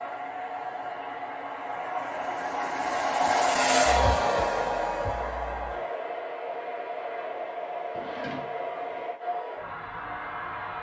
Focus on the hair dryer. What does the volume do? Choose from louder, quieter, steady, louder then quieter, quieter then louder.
louder then quieter.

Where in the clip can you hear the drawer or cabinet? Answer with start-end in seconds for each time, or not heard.
7.9-9.1.